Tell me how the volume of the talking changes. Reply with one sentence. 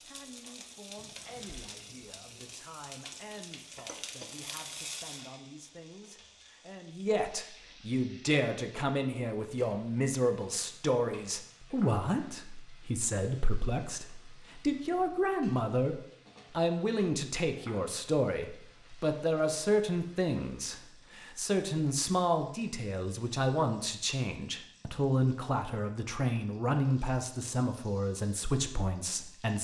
The volume of the talking goes up.